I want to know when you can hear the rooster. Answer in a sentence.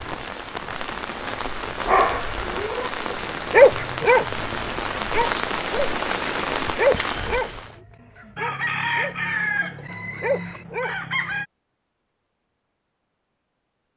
The rooster can be heard from 8.3 to 11.4 s.